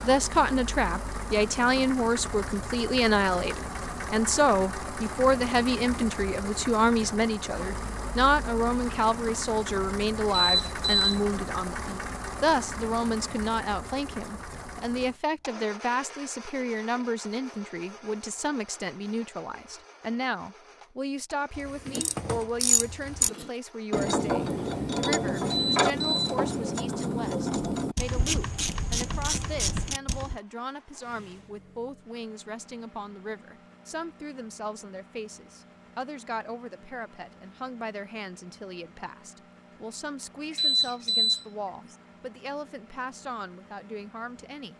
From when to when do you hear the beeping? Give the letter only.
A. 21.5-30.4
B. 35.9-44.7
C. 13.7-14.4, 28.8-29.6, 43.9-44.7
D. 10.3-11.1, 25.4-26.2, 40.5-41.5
D.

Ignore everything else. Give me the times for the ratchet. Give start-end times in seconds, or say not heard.
21.5-30.4.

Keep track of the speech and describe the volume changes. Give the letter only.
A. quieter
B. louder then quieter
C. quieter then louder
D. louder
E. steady
A.